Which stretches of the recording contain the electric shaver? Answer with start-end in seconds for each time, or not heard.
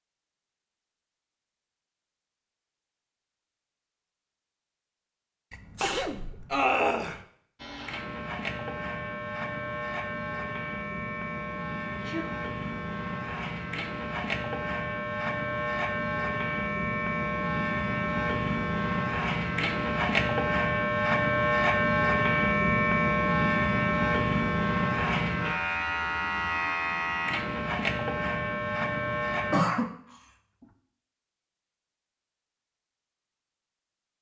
7.5-29.6.